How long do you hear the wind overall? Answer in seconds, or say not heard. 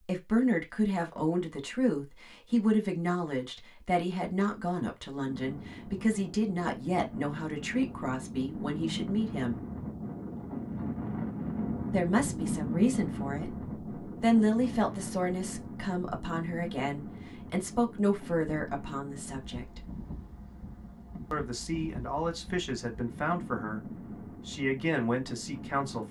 21 s.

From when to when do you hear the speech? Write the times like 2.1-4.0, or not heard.
0.1-9.6, 11.9-19.9, 21.3-23.8, 24.4-26.0.